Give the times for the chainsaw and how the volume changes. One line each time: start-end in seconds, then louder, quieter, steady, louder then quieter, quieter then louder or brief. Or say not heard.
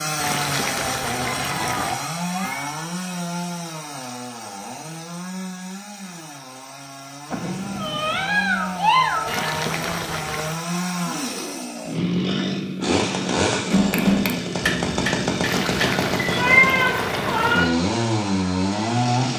0.0-19.3 quieter then louder.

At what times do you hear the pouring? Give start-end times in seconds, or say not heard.
0.2-1.9, 9.2-10.6, 15.4-17.7.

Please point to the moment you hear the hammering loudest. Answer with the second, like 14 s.
14 s.